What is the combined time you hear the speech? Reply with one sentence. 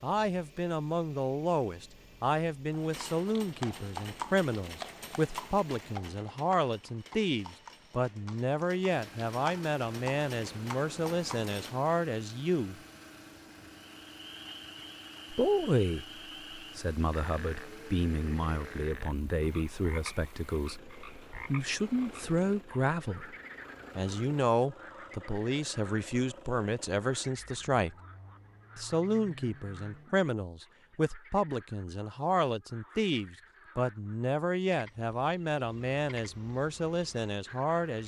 You can hear the speech for 34 seconds altogether.